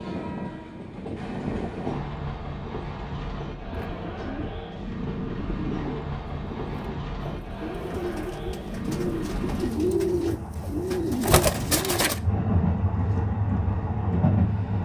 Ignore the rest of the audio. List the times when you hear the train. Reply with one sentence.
You can hear the train from 0.0 to 14.8 s.